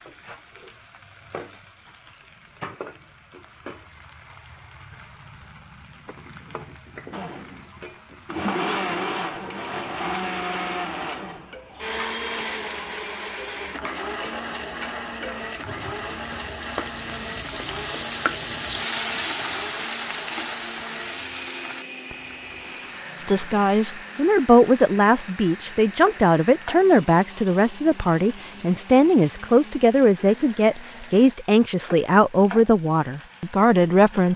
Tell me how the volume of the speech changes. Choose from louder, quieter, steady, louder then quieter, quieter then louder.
steady.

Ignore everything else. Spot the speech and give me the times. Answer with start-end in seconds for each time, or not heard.
23.2-34.3.